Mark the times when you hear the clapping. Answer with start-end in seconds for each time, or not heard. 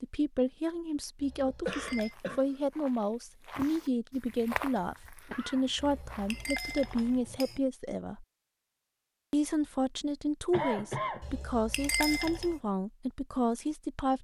not heard.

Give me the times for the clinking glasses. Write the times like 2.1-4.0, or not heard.
1.2-2.1, 5.8-7.6, 11.2-12.6.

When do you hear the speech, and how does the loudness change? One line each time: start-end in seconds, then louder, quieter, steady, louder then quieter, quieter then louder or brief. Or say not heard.
0.0-8.2 steady
9.3-14.1 steady.